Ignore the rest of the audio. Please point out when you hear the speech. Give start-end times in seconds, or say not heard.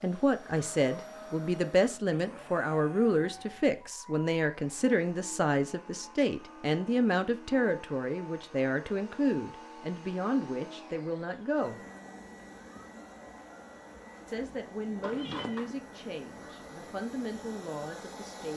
0.0-11.8, 14.2-18.5.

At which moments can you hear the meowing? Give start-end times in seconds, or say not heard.
15.0-15.8.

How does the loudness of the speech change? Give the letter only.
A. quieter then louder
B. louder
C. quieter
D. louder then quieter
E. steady
C.